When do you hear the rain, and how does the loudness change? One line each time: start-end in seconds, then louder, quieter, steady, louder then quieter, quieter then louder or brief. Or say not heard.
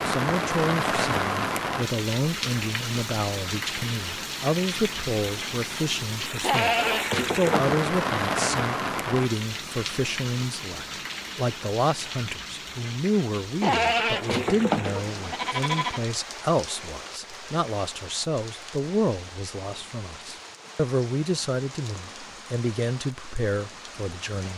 0.0-24.5 quieter.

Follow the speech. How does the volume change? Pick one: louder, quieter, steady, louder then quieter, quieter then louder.
steady.